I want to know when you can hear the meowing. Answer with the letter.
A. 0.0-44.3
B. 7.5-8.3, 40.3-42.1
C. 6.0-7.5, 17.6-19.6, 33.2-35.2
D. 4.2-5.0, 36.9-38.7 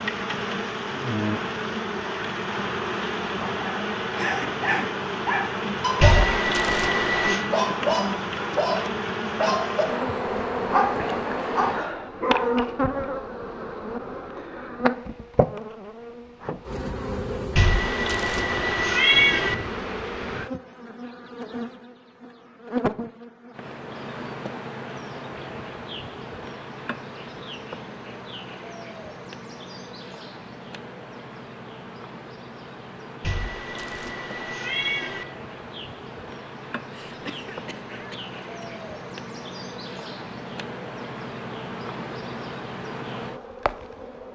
C.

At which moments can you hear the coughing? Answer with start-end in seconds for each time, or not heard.
4.2-5.0, 36.9-38.7.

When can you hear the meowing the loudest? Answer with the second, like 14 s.
19 s.